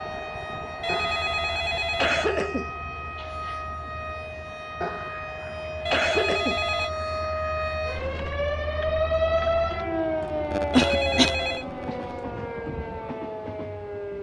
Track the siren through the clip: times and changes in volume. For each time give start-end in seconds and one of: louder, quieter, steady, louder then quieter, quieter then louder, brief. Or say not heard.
0.0-14.1 louder then quieter.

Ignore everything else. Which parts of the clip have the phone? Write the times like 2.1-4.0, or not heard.
0.8-2.3, 5.8-6.9, 10.7-11.7.